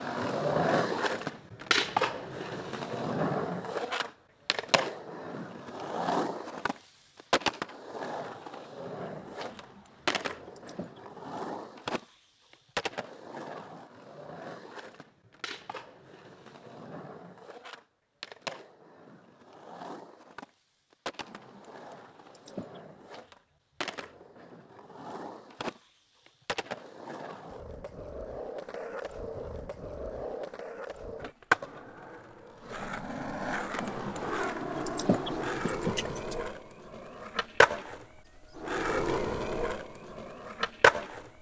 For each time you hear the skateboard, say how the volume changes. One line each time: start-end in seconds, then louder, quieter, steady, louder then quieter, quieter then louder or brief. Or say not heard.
0.0-41.2 quieter then louder.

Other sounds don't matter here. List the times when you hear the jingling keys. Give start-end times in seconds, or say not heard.
9.4-11.0, 21.2-22.8, 33.7-36.4.